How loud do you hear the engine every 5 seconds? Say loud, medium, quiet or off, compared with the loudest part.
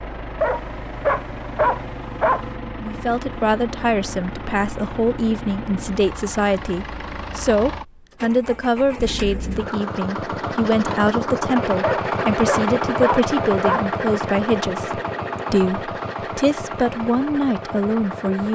medium, medium, loud, medium.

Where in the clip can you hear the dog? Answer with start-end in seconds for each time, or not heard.
0.4-2.5, 11.8-13.8.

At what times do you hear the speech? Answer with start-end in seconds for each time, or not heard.
2.8-18.5.